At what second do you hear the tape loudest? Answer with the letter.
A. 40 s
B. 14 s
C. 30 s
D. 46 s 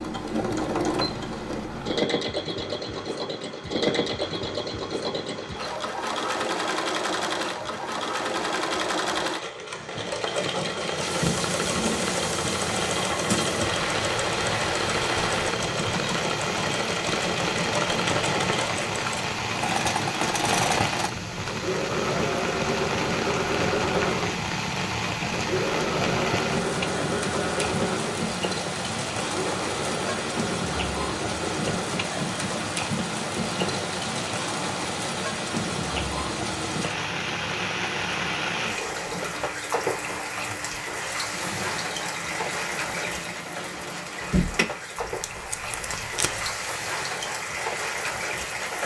D.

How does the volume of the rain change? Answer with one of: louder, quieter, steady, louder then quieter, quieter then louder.
louder.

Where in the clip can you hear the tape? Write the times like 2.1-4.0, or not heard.
45.0-46.5.